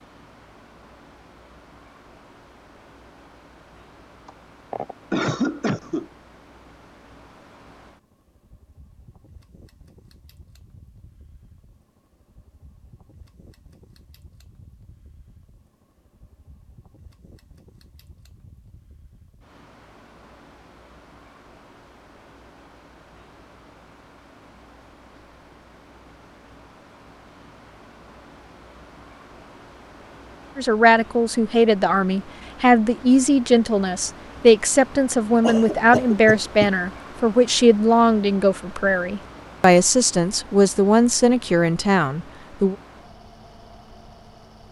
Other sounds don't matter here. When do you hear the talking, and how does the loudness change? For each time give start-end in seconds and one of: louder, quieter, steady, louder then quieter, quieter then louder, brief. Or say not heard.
30.6-42.8 steady.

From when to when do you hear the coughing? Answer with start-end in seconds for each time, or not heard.
4.2-6.0, 35.4-36.7.